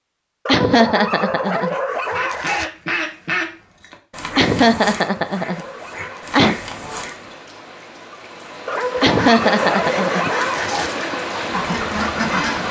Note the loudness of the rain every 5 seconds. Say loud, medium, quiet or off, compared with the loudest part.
off, medium, loud.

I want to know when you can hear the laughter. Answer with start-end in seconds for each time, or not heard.
0.5-1.8, 4.3-6.6, 9.0-10.7.